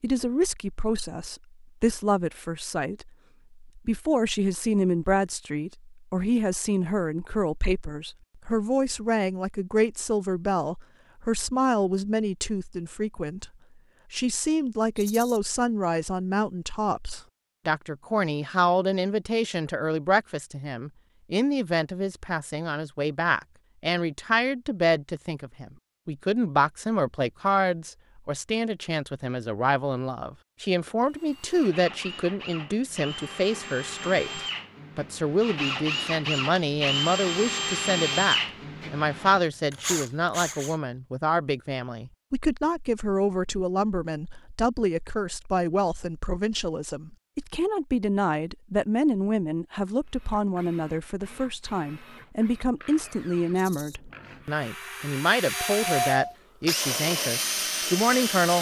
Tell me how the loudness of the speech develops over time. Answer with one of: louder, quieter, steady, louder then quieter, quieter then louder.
steady.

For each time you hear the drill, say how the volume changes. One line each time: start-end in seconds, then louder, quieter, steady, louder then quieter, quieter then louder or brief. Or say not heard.
31.0-40.8 louder then quieter
50.0-58.5 louder.